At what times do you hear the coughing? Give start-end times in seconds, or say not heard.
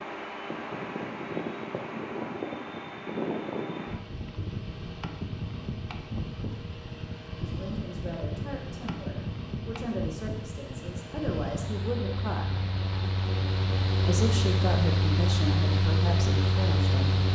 not heard.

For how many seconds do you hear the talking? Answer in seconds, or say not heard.
8 s.